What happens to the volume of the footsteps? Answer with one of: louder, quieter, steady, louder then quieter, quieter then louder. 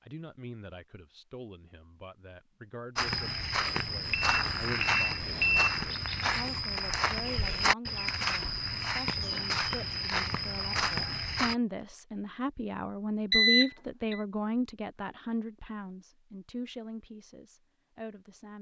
steady.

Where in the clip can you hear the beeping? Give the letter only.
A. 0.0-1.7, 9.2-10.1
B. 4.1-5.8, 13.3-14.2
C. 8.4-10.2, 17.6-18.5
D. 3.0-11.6
B.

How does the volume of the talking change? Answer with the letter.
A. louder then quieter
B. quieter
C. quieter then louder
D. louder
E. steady
A.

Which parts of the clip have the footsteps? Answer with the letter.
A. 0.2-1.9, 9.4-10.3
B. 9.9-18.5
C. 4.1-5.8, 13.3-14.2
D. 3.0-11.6
D.